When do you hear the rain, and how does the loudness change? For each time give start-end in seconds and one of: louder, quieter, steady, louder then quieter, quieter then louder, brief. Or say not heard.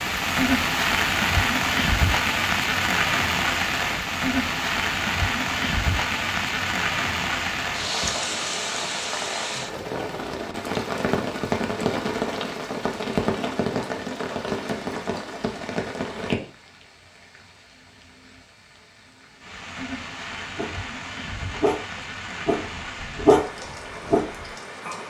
0.0-25.0 quieter.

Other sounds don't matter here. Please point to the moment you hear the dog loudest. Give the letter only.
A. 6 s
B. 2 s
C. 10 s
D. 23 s
D.